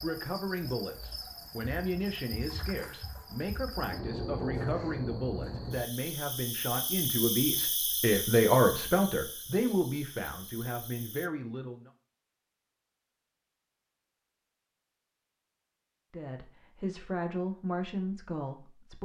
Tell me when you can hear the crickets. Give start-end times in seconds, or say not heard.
0.0-11.3.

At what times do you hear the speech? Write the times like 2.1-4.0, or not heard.
0.0-11.9, 16.1-19.0.